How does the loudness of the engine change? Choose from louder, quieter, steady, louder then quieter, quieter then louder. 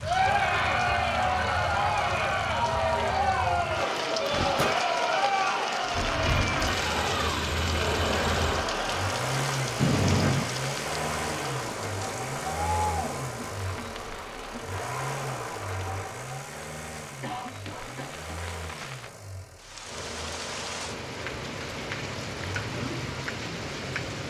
quieter.